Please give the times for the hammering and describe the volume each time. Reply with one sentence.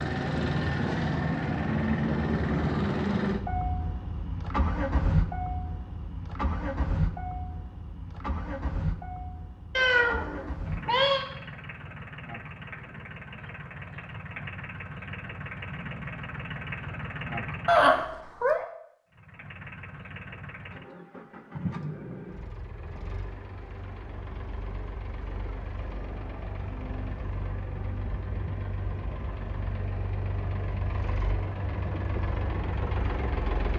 The hammering can't be heard in this clip.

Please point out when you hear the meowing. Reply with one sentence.
The meowing can be heard from 9.8 to 11.2 s and from 17.6 to 18.6 s.